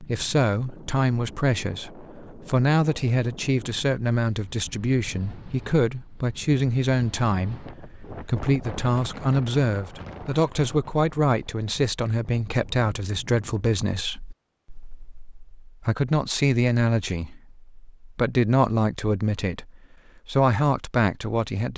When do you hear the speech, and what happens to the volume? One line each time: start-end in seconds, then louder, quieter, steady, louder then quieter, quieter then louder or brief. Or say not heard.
0.0-21.7 steady.